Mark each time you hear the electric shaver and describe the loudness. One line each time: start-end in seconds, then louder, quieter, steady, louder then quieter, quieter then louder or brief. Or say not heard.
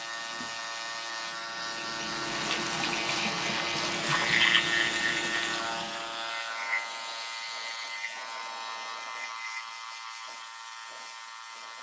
0.0-11.7 louder then quieter.